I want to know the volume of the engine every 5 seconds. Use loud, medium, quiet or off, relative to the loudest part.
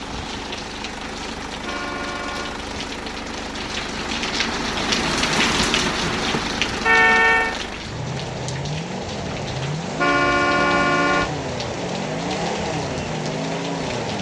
medium, loud, loud.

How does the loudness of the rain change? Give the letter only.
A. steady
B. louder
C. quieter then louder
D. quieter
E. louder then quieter
E.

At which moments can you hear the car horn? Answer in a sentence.
You can hear the car horn from 1.6 to 2.6 s, from 6.8 to 7.5 s and from 9.9 to 11.3 s.